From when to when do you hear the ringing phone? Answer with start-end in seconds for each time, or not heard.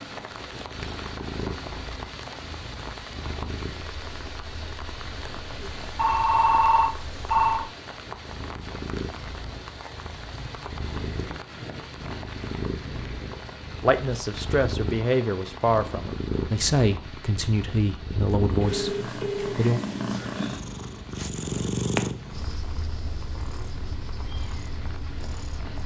5.6-7.7, 18.6-19.6.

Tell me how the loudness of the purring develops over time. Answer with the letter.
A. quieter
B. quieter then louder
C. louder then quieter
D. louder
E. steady
D.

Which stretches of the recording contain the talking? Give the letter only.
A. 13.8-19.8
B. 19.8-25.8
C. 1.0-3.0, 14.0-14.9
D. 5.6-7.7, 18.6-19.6
A.